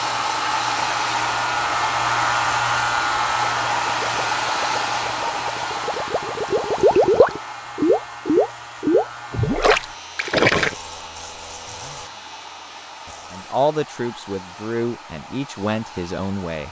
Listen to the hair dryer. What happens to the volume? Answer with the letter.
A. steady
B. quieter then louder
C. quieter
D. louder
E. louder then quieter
C.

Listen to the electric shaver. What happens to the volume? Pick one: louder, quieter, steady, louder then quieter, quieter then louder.
quieter.